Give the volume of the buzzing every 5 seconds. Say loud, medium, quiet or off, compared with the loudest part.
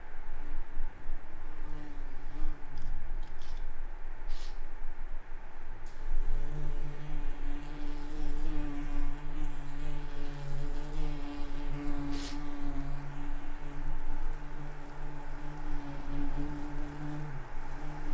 quiet, loud, loud, loud.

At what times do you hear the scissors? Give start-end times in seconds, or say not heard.
2.8-3.8.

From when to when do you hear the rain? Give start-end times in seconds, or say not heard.
0.0-18.1.